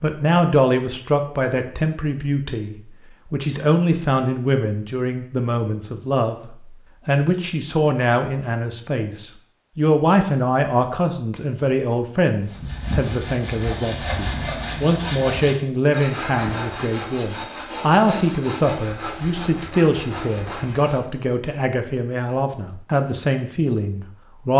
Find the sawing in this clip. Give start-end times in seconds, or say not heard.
12.4-21.1.